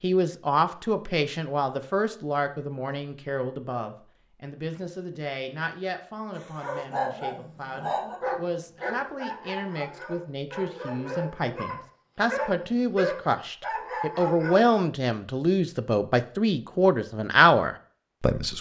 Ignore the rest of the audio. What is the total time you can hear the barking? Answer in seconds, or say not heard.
8 s.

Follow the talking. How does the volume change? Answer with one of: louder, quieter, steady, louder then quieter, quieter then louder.
quieter then louder.